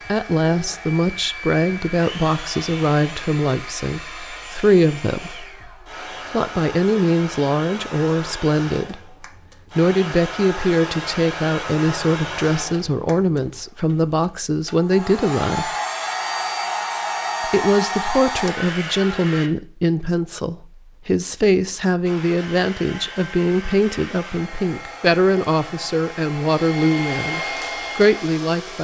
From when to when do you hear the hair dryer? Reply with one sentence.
The hair dryer can be heard from 0.0 to 19.5 s and from 22.1 to 28.7 s.